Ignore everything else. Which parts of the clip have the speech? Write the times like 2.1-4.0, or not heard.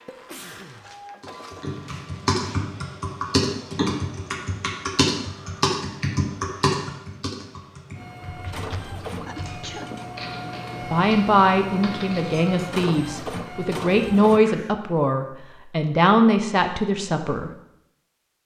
10.9-17.5.